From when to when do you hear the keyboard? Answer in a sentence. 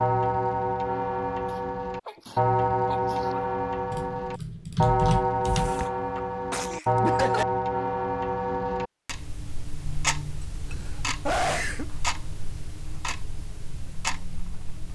The keyboard can be heard from 3.9 to 5.8 s.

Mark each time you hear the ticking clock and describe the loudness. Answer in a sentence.
You can hear the ticking clock from 0.0 to 14.9 s, getting quieter.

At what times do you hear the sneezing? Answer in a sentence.
You can hear the sneezing from 1.4 to 3.5 s, from 5.5 to 7.5 s and from 10.7 to 11.8 s.